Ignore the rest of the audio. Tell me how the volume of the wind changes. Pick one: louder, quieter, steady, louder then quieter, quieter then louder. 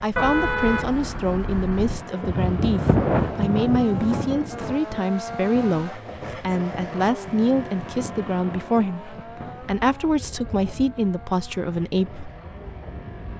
quieter.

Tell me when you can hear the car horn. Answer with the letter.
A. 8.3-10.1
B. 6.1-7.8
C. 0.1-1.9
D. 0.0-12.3
C.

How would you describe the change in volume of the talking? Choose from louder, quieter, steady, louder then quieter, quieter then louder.
steady.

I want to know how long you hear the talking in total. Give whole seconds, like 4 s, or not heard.
12 s.